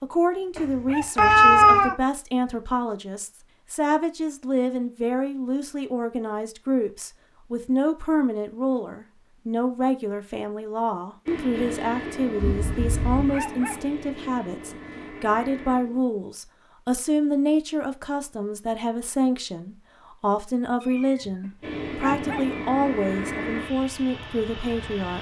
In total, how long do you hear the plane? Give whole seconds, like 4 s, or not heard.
8 s.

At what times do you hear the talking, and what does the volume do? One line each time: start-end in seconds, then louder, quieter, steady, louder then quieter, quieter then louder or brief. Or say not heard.
0.0-25.1 steady.